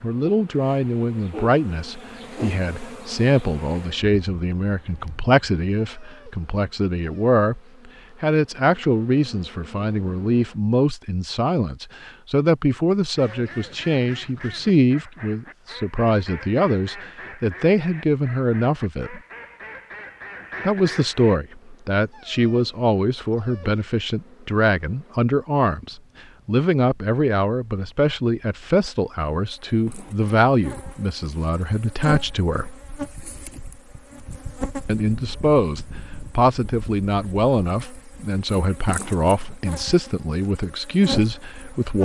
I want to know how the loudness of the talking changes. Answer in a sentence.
The volume of the talking stays about the same.